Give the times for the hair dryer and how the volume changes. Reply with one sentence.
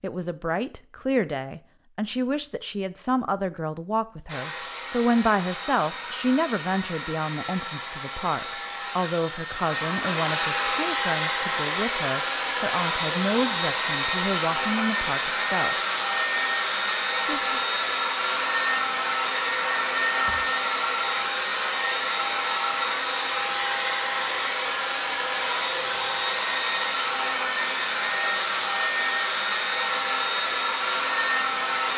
You can hear the hair dryer from 4.2 to 31.9 s, getting louder.